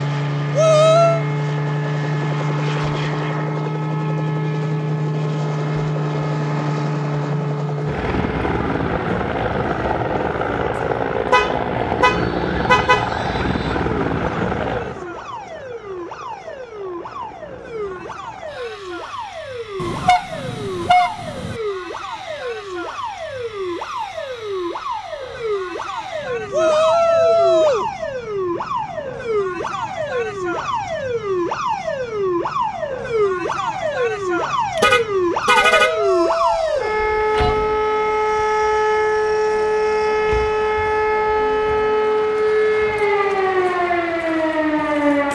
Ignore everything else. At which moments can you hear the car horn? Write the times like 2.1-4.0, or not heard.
11.3-13.1, 19.8-21.6, 34.8-36.0.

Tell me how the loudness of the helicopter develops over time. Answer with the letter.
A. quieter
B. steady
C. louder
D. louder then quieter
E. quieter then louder
A.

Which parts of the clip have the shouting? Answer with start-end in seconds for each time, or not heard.
0.6-1.2, 26.5-27.9, 35.8-37.5.